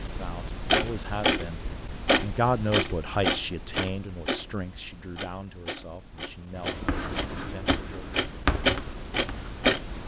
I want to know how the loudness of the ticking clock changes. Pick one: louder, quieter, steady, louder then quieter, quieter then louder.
quieter then louder.